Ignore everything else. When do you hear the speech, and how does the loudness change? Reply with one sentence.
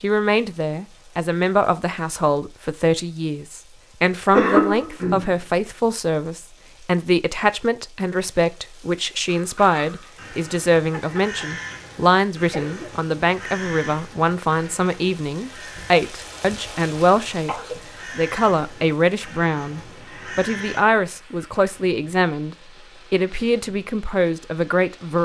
You can hear the speech from 0.0 to 17.6 s, at a steady volume; and from 18.1 to 25.2 s, at a steady volume.